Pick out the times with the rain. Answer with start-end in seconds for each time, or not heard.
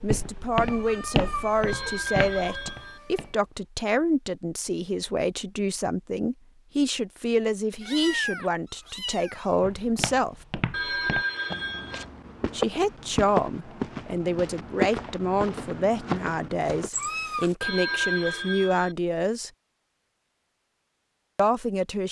not heard.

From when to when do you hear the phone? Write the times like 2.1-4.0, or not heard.
1.6-3.0, 10.7-12.1, 17.6-18.9.